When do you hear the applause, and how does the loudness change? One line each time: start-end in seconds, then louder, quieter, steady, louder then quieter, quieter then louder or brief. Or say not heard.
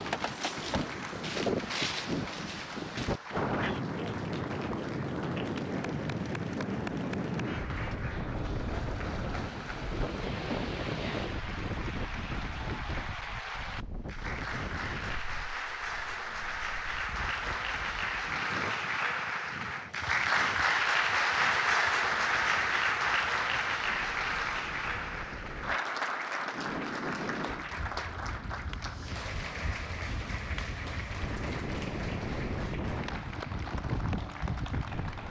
0.0-35.2 louder then quieter.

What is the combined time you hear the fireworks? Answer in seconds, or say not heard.
not heard.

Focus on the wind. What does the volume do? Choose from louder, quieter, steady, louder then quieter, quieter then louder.
quieter then louder.